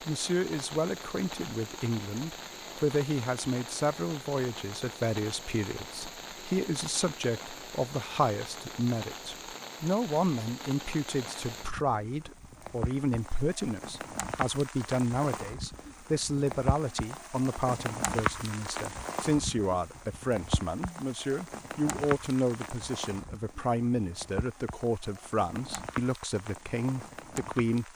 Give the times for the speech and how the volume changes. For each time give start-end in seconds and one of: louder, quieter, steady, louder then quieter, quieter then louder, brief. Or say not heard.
0.1-27.9 steady.